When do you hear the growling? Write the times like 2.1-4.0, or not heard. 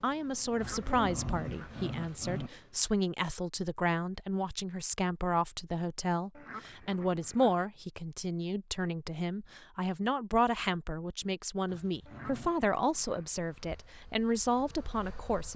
0.6-2.5, 11.7-12.6.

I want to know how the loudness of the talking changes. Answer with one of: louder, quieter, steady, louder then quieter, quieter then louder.
steady.